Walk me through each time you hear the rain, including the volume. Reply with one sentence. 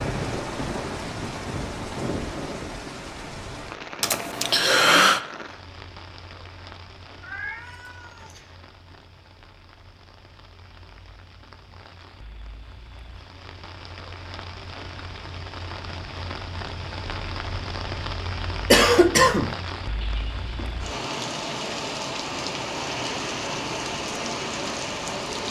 You can hear the rain from 0.0 to 25.4 s, getting quieter then louder.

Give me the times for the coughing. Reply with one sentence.
The coughing can be heard from 4.0 to 5.2 s and from 18.7 to 19.6 s.